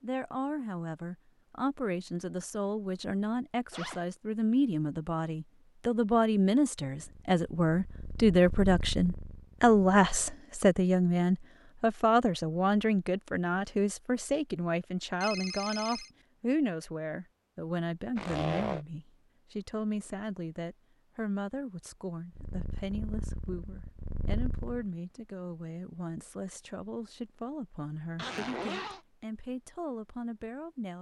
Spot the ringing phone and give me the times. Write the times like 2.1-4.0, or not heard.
15.2-16.1.